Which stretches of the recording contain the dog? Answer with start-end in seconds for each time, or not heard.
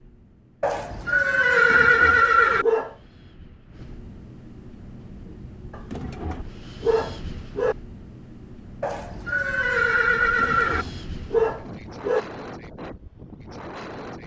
1.5-3.0, 5.7-7.8, 10.2-12.2.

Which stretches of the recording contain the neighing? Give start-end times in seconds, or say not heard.
0.6-2.6, 8.8-10.8.